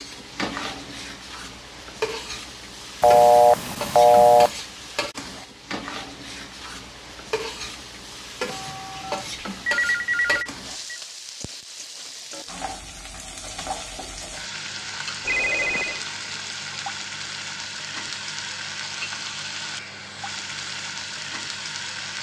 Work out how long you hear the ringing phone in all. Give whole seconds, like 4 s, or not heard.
5 s.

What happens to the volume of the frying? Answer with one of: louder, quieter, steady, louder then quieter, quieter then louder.
steady.